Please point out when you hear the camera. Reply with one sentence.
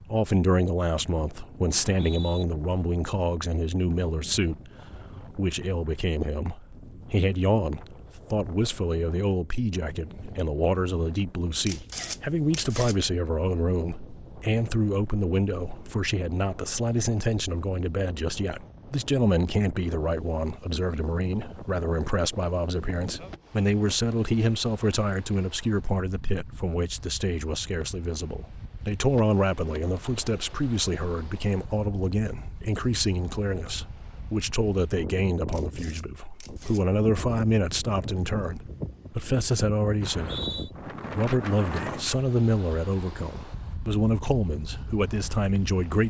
The camera can be heard from 11.7 to 12.9 s and from 35.5 to 36.9 s.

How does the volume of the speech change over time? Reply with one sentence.
The volume of the speech stays about the same.